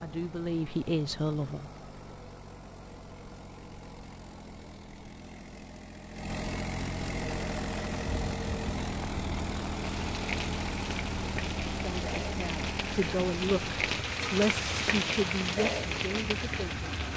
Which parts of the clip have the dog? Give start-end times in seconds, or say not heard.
not heard.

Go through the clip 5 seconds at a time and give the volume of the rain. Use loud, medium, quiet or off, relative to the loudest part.
off, medium, loud, loud.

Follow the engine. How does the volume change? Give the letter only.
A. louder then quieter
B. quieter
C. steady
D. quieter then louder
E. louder
A.